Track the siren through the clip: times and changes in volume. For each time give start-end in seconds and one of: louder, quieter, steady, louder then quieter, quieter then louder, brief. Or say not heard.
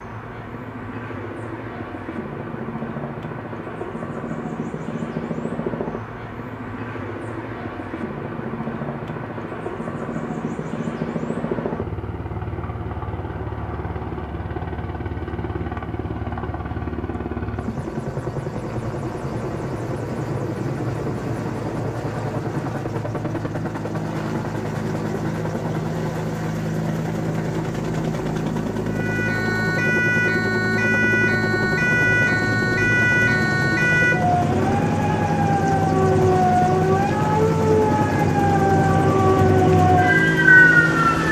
28.9-41.2 louder.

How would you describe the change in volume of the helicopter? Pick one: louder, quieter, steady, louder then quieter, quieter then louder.
louder.